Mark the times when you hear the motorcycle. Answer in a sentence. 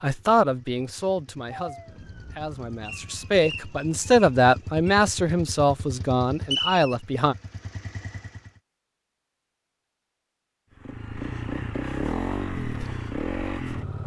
The motorcycle can be heard from 0.0 to 8.5 s and from 10.8 to 14.0 s.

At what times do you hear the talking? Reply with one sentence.
The talking can be heard from 0.0 to 7.3 s.